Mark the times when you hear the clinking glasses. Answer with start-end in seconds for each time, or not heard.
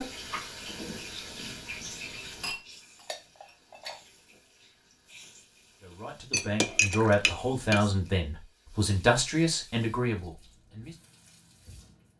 2.4-4.0, 6.3-7.9.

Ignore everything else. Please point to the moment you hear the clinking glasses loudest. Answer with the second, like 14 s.
7 s.